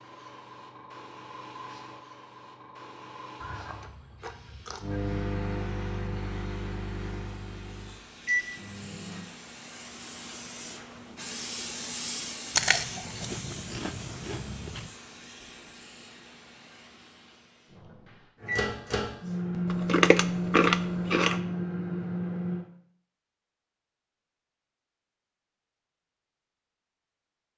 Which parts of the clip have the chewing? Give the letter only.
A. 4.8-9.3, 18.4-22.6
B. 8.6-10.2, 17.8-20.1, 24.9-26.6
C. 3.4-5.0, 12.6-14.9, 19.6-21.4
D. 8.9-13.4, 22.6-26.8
C.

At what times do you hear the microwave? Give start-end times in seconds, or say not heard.
4.8-9.3, 18.4-22.6.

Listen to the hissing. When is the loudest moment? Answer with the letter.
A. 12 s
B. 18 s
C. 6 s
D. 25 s
A.